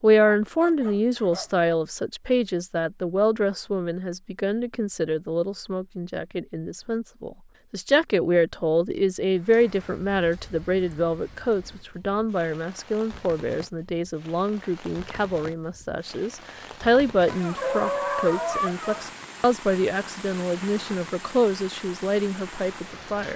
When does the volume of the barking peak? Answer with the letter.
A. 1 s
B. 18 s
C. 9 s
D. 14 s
B.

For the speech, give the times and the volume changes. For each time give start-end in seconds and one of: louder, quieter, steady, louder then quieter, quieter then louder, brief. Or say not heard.
0.0-23.3 steady.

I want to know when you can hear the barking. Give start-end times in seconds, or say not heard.
0.1-1.7, 17.2-19.1.